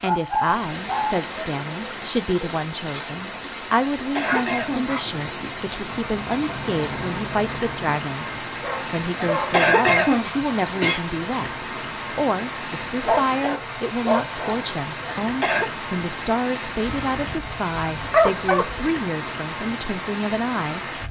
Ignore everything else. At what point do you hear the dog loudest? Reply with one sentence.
The volume of the dog peaks at 18 seconds.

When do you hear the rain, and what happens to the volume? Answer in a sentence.
The rain can be heard from 0.0 to 21.0 s, at a steady volume.